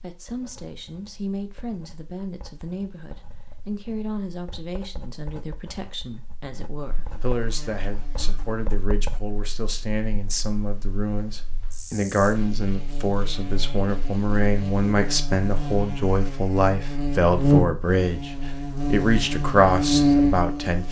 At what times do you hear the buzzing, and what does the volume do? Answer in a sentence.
The buzzing can be heard from 6.8 to 20.8 s, getting louder.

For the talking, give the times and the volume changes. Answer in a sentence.
The talking can be heard from 0.0 to 20.8 s, getting louder.